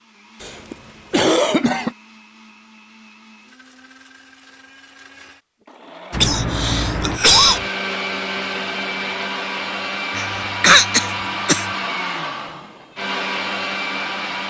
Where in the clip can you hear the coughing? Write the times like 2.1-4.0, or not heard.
0.4-1.9, 6.2-7.6, 10.2-11.7.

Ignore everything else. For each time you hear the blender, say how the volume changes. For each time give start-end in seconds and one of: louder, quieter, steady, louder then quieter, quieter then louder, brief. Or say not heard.
0.0-14.4 louder.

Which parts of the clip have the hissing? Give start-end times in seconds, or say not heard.
6.1-7.7.